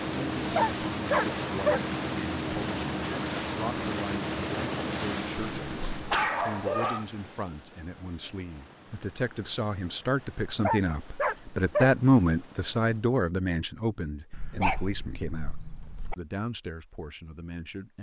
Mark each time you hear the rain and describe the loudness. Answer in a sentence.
The rain can't be heard in this clip.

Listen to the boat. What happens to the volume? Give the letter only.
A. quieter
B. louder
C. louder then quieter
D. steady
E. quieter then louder
A.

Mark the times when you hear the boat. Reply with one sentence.
You can hear the boat from 0.0 to 13.2 s.